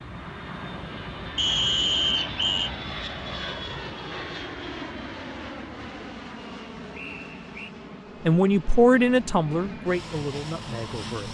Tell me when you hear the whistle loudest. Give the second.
2 s.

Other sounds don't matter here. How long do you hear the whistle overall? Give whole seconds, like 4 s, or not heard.
2 s.